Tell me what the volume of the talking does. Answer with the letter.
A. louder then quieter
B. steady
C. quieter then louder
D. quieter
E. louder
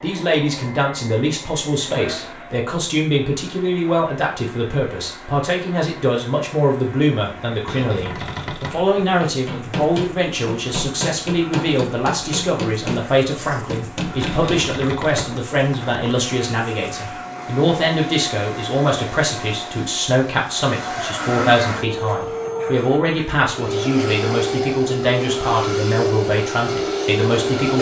B.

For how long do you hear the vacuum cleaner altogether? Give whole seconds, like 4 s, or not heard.
28 s.